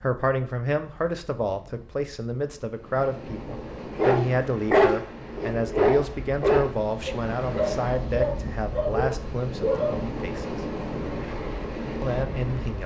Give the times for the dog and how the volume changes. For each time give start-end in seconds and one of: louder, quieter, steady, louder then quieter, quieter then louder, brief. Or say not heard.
4.0-10.0 quieter.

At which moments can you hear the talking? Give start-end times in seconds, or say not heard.
0.0-10.6, 12.0-12.8.